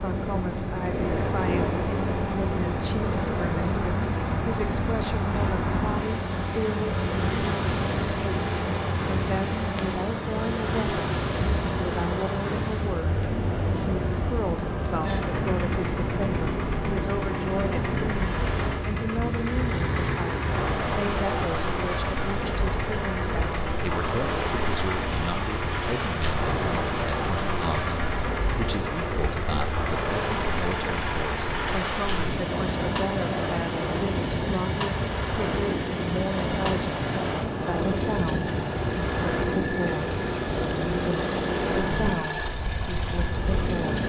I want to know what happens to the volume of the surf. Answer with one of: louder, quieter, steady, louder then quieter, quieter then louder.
steady.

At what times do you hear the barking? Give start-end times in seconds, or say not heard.
not heard.